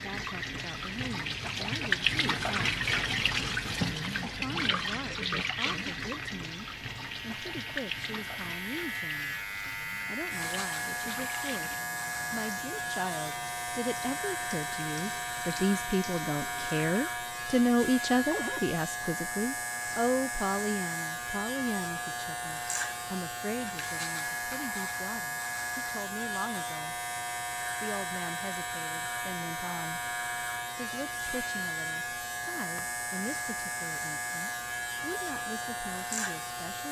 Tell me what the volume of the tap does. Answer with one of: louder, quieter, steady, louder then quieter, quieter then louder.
quieter.